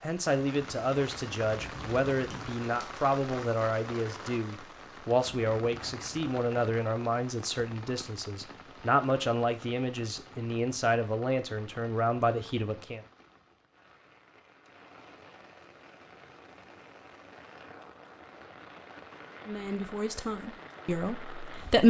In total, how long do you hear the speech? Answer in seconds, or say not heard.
15 s.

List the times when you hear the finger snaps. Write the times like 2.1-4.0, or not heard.
2.3-2.9.